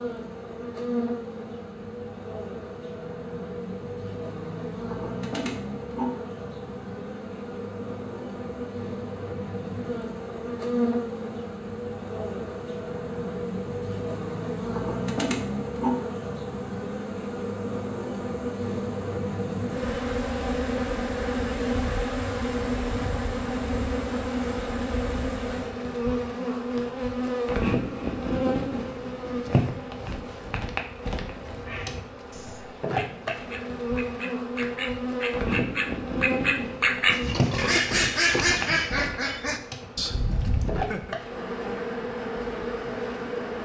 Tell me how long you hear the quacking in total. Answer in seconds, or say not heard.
10 s.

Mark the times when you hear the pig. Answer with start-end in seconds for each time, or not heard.
37.0-38.9.